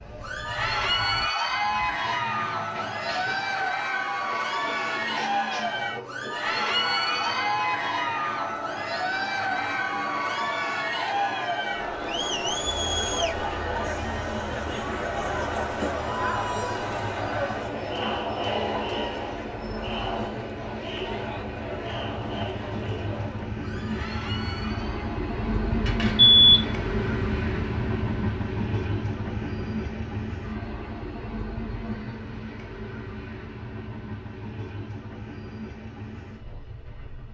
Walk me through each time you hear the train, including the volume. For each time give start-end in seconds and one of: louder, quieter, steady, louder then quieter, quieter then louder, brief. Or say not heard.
0.0-37.2 louder then quieter.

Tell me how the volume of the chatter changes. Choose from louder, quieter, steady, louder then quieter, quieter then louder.
quieter.